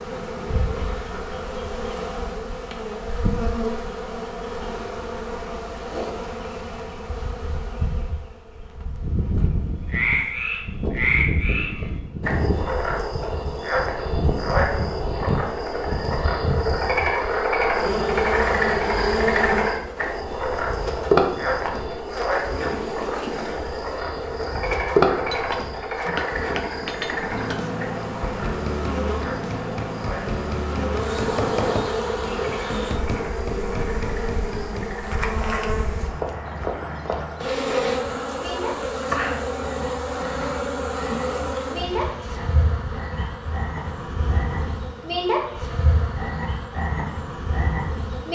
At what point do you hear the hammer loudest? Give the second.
32 s.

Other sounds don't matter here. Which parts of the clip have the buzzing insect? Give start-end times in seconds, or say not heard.
0.0-48.2.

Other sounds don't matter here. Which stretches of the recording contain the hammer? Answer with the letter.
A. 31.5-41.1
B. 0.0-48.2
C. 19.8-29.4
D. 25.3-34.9
D.